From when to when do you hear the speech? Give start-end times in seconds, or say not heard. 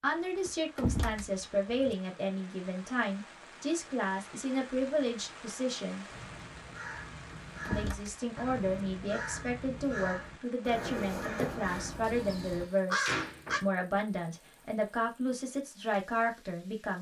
0.0-6.0, 7.7-16.9.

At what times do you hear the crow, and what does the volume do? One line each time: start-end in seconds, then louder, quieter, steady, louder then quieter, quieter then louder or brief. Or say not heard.
6.1-13.6 louder.